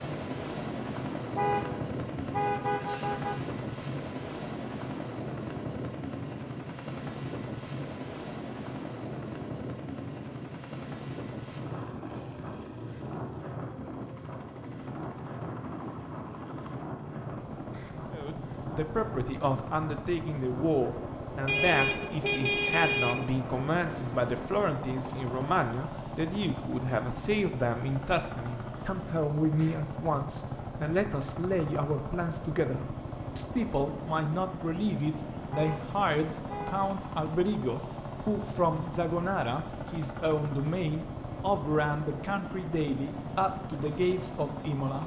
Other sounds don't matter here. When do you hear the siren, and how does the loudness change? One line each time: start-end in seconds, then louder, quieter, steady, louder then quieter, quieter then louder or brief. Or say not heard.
not heard.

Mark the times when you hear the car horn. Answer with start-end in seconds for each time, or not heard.
1.4-3.5, 21.4-23.4, 35.5-36.9.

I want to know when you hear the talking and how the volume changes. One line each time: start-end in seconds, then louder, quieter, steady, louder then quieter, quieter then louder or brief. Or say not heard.
18.1-45.0 steady.